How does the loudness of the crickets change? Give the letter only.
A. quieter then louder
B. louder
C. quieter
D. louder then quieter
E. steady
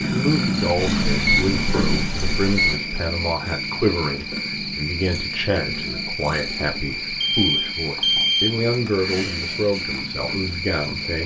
E.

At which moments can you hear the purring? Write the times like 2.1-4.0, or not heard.
0.0-11.2.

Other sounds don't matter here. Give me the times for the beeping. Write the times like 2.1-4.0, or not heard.
0.8-2.8, 7.2-8.6.